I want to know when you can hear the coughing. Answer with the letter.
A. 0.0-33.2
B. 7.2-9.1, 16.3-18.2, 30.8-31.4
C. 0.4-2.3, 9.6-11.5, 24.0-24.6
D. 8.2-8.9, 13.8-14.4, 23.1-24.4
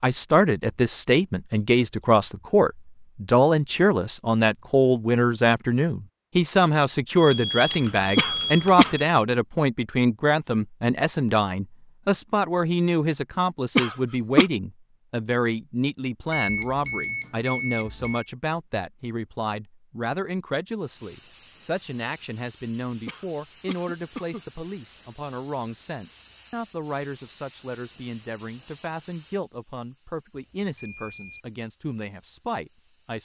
D.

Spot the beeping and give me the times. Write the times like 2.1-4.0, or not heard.
7.2-9.1, 16.3-18.2, 30.8-31.4.